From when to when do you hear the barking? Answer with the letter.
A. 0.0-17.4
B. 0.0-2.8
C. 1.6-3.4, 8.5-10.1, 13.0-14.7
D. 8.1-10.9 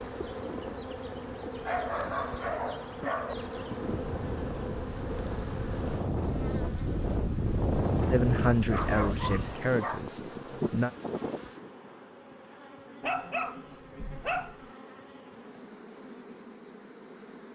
C.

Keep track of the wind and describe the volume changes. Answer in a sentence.
The loudness of the wind goes up, then down.